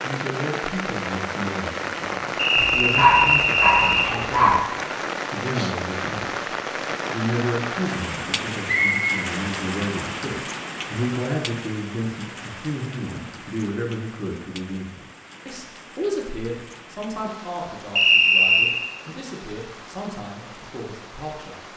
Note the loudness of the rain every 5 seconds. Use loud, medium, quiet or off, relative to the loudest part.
loud, loud, medium, quiet, quiet.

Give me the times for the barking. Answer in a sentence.
You can hear the barking from 2.5 to 4.5 s.